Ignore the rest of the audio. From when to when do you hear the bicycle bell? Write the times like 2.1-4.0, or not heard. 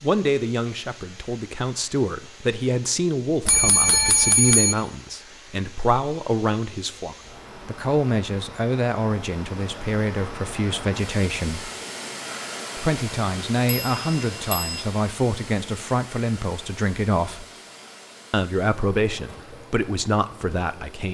3.5-4.8, 13.7-14.8.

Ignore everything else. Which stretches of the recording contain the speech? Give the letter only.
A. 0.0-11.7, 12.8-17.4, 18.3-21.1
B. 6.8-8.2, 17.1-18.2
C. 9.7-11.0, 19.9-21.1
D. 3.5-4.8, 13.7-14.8
A.